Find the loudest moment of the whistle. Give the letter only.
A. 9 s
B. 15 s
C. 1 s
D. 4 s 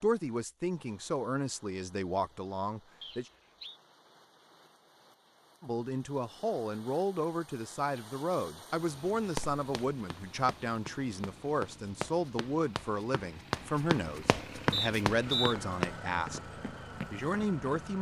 B.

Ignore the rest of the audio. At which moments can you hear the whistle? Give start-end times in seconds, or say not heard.
3.0-3.8, 14.7-15.6.